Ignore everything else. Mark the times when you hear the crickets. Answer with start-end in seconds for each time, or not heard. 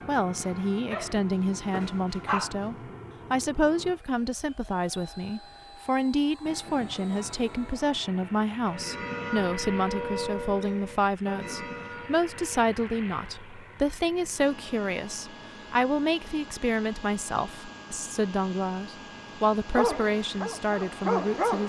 not heard.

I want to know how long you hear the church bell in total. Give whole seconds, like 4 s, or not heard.
6 s.